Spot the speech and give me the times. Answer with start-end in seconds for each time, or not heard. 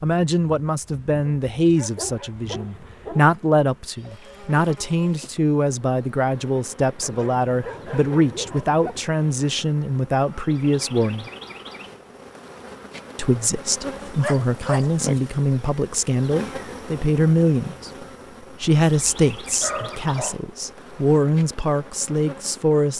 0.0-11.3, 13.2-17.9, 18.6-22.9.